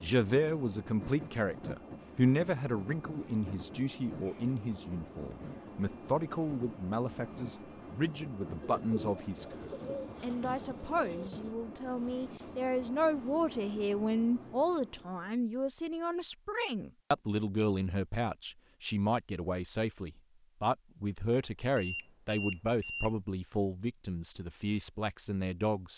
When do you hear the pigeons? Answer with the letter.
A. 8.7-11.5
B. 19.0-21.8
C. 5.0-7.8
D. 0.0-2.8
A.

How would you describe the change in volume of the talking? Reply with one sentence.
The volume of the talking stays about the same.